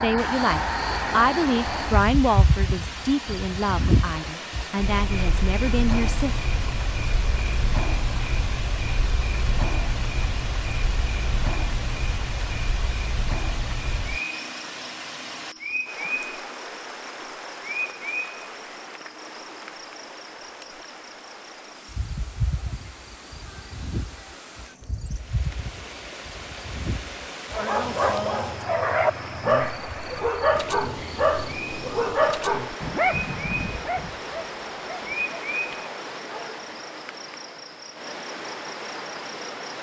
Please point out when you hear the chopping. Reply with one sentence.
You can't hear the chopping here.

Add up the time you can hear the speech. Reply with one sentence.
You can hear the speech for 6 seconds altogether.